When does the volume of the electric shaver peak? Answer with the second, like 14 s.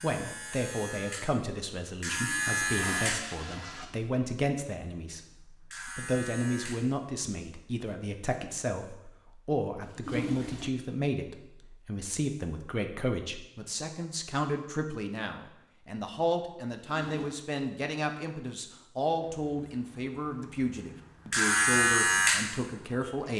22 s.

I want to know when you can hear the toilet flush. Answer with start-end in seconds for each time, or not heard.
2.1-3.9, 9.8-10.7, 16.9-17.4.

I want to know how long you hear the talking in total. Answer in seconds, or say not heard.
23 s.